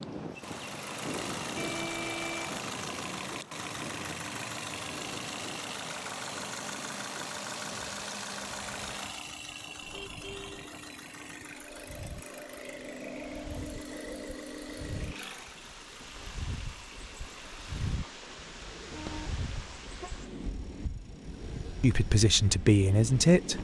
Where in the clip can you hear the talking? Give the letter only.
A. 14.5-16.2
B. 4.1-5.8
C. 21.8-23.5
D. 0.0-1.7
C.